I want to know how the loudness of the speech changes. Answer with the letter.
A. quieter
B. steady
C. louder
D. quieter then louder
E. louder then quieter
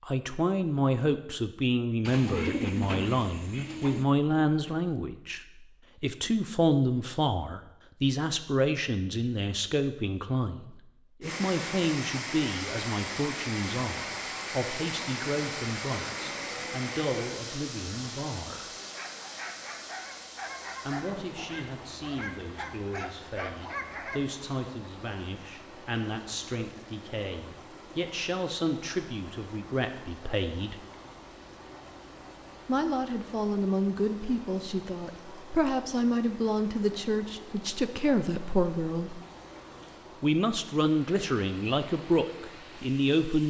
D.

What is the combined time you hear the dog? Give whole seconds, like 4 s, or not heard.
5 s.